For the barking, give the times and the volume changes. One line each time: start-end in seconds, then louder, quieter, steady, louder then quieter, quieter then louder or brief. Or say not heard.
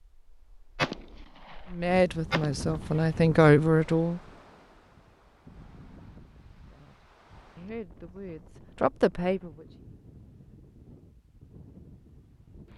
not heard.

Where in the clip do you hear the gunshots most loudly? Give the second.
1 s.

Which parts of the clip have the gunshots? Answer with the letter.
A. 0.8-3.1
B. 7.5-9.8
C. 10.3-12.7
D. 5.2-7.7
A.